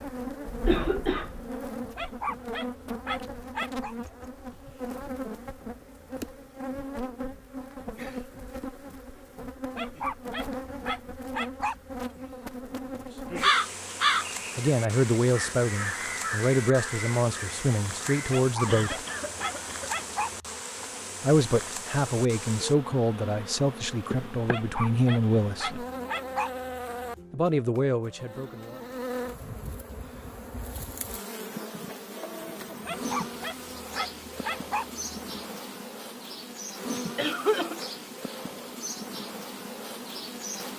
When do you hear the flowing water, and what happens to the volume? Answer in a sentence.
You can't hear the flowing water here.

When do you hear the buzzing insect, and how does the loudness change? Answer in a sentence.
You can hear the buzzing insect from 0.0 to 40.7 s, at a steady volume.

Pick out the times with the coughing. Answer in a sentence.
You can hear the coughing from 0.5 to 1.5 s, from 18.6 to 20.1 s and from 37.1 to 37.9 s.